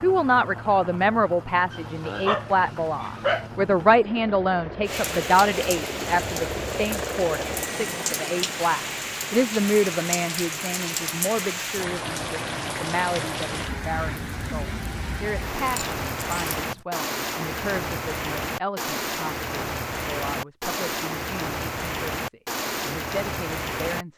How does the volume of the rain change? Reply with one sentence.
The loudness of the rain stays about the same.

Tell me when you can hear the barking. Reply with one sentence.
You can hear the barking from 1.7 to 3.5 s and from 15.6 to 16.6 s.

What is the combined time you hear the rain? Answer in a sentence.
You can hear the rain for 19 seconds altogether.